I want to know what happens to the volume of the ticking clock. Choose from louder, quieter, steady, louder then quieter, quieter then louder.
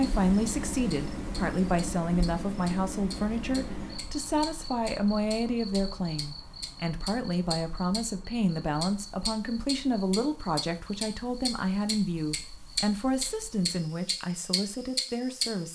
louder.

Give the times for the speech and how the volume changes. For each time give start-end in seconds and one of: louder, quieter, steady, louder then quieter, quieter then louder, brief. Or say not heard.
0.0-15.6 steady.